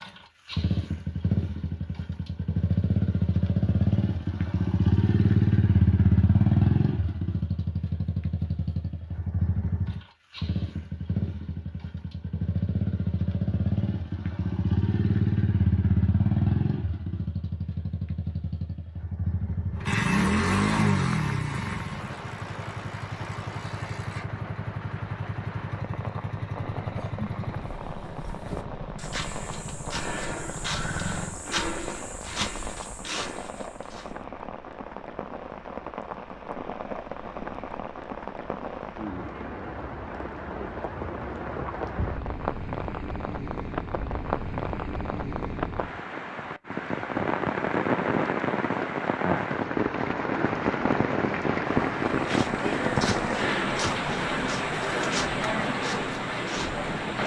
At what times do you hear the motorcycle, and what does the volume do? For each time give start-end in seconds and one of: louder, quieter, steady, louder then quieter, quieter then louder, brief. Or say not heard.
0.0-31.4 quieter.